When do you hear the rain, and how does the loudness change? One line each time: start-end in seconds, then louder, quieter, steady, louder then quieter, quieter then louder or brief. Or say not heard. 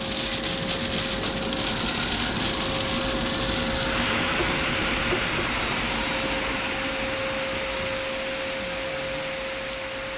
0.0-10.1 quieter.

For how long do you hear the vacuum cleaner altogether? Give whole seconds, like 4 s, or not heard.
10 s.